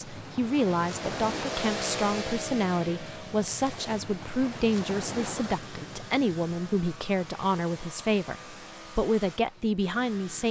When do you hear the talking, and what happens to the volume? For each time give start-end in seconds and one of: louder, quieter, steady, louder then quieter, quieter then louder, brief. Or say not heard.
0.1-10.4 steady.